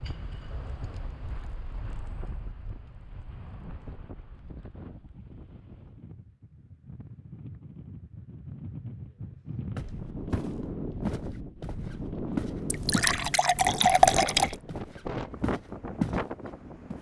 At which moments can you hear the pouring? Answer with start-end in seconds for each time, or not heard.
12.7-14.6.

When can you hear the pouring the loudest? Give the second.
14 s.